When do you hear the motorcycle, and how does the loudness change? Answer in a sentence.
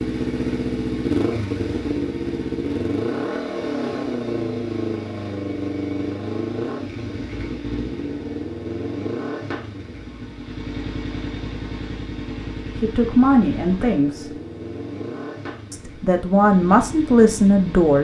You can hear the motorcycle from 0.0 to 17.9 s, getting quieter.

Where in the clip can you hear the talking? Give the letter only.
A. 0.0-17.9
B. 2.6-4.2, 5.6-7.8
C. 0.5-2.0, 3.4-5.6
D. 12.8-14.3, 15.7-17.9
D.